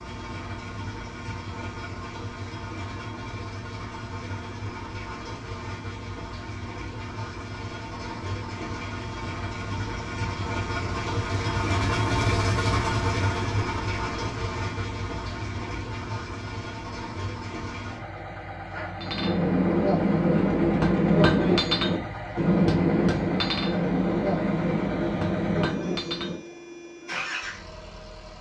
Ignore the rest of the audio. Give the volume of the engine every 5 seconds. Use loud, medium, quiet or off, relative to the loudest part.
medium, medium, loud, medium, medium, medium.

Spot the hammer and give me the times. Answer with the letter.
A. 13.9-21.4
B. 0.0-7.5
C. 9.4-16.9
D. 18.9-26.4
D.